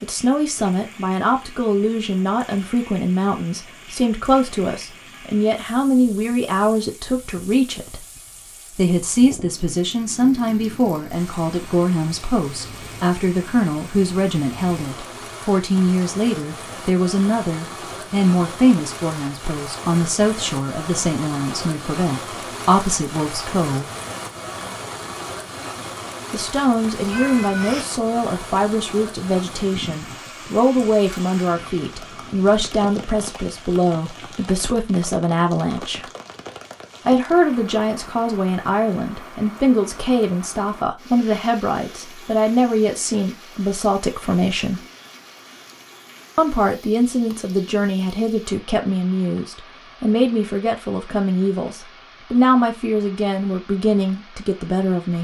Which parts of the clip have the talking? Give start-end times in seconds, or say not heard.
0.0-8.1, 8.7-23.9, 26.3-36.1, 37.0-44.8, 46.4-55.1.